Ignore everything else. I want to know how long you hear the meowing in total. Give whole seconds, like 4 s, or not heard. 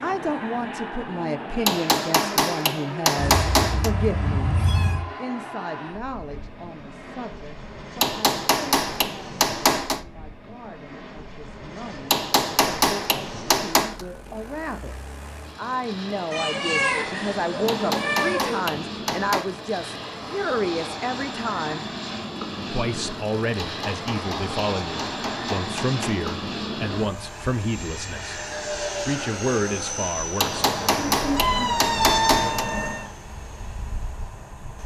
7 s.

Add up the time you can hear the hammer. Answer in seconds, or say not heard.
13 s.